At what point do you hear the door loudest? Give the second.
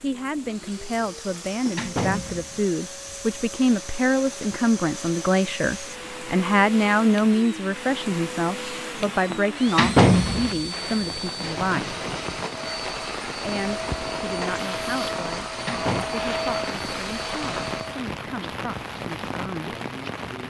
10 s.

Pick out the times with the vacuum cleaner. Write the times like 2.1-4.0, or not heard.
0.0-18.1.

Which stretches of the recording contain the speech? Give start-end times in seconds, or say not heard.
0.0-12.0, 13.4-19.8.